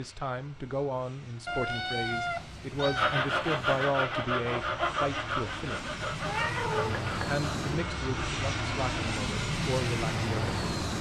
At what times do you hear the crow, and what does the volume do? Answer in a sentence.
The crow can't be heard in this clip.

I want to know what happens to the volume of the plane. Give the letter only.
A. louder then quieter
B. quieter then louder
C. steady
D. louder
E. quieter
D.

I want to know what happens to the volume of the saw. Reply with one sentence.
The volume of the saw goes down.